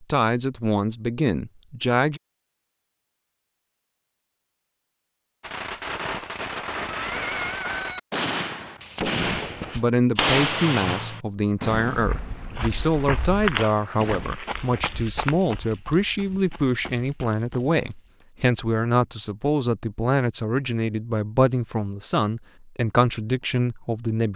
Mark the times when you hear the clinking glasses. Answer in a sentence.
The clinking glasses can't be heard in this clip.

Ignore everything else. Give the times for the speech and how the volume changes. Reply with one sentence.
The speech can be heard briefly from 0.0 to 2.2 s; and from 9.8 to 24.3 s, at a steady volume.